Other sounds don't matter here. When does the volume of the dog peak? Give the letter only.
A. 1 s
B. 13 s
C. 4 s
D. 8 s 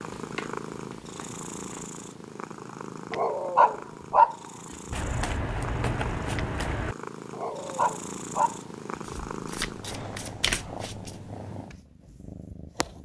C.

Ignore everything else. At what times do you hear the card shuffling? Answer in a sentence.
The card shuffling can be heard from 0.1 to 1.9 s, from 4.9 to 7.0 s and from 9.1 to 11.2 s.